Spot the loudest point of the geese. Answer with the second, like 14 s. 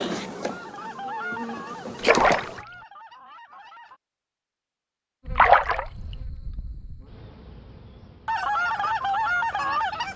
9 s.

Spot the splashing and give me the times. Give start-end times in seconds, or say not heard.
2.0-2.6, 5.3-6.2.